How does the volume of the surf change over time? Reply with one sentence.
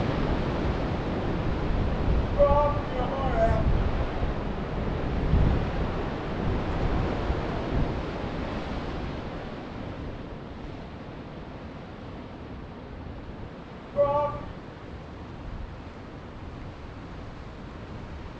The loudness of the surf goes down.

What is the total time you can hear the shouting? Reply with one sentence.
You can hear the shouting for 2 seconds altogether.